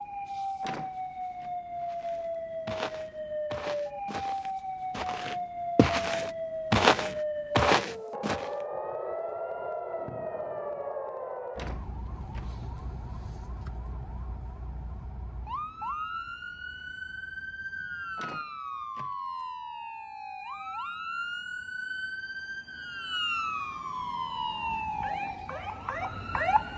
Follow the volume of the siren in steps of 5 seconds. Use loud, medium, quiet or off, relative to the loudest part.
loud, loud, medium, medium, loud, loud.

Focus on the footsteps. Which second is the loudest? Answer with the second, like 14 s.
7 s.